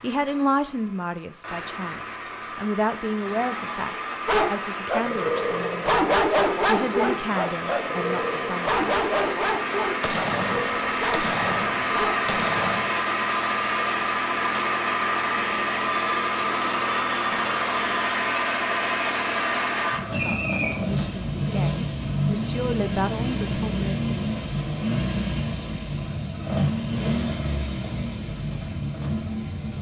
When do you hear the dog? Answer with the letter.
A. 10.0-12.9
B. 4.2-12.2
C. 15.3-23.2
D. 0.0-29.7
B.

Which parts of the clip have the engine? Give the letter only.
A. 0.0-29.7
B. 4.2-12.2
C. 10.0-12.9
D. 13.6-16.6
A.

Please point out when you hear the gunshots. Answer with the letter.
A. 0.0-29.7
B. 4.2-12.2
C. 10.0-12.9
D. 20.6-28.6
C.